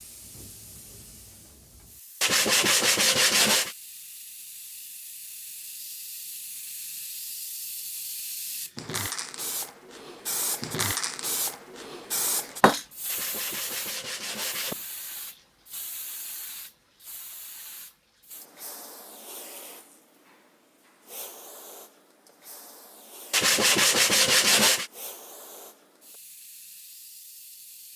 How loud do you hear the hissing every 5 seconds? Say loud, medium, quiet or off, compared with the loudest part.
quiet, medium, loud, quiet, quiet, quiet.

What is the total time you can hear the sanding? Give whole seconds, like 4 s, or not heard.
5 s.